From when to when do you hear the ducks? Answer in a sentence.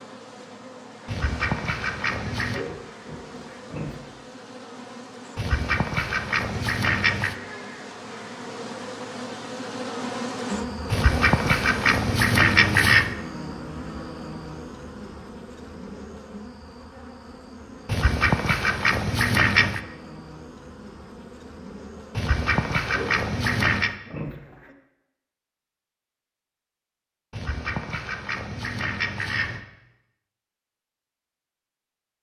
The ducks can be heard from 1.1 to 2.6 s, from 5.3 to 7.3 s, from 10.9 to 13.2 s, from 17.9 to 19.8 s, from 22.1 to 23.9 s and from 27.3 to 29.6 s.